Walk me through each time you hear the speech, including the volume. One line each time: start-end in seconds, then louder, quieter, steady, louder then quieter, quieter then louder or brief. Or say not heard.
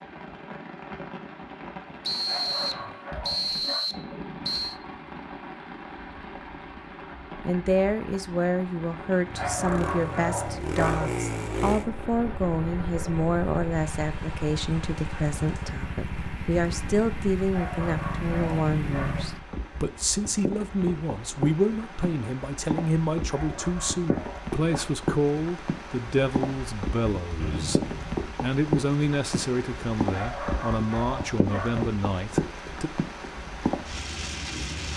7.5-32.9 steady.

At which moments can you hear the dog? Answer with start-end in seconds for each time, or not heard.
2.2-3.9, 9.3-11.1, 17.5-19.2, 23.3-24.9, 30.1-31.9.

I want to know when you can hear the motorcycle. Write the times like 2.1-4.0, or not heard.
9.2-19.4.